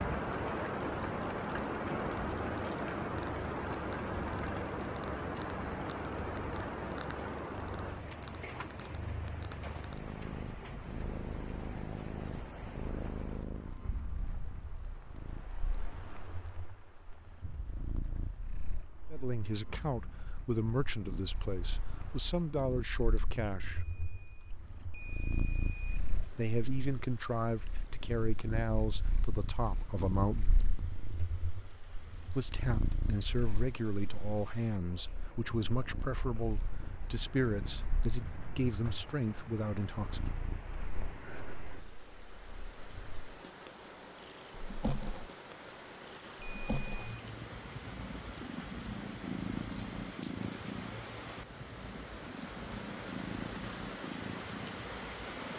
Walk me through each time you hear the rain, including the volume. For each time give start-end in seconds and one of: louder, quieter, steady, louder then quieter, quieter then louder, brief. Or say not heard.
0.0-55.5 quieter then louder.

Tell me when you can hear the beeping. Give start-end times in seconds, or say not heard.
23.7-26.0, 46.4-47.2.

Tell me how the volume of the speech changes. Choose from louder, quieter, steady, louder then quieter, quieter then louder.
steady.